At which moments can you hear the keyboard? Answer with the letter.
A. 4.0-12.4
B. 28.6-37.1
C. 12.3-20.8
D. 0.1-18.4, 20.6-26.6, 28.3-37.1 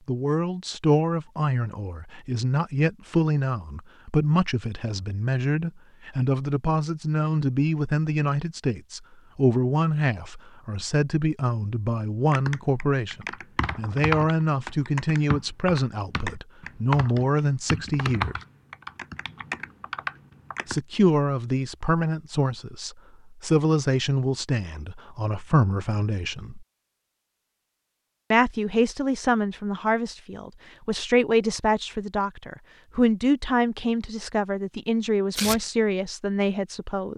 C.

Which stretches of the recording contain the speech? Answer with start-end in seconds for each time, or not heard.
0.1-18.4, 20.6-26.6, 28.3-37.1.